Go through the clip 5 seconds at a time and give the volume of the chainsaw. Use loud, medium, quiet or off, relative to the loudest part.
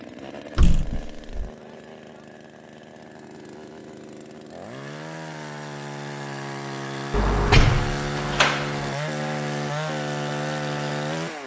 quiet, loud, loud.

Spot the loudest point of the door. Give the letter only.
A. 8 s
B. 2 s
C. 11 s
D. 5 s
A.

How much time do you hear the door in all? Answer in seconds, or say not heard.
3 s.